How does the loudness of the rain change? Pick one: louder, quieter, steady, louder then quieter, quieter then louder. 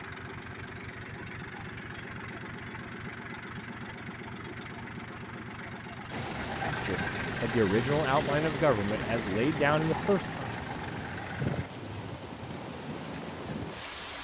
steady.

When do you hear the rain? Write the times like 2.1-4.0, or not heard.
6.1-14.1.